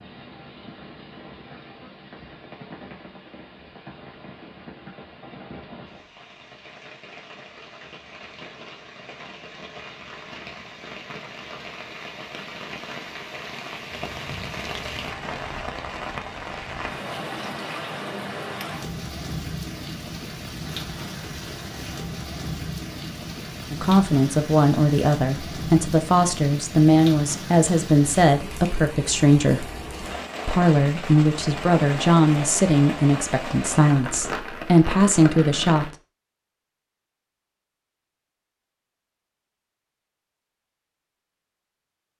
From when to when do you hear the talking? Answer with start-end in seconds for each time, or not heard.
23.7-29.7, 30.4-35.9.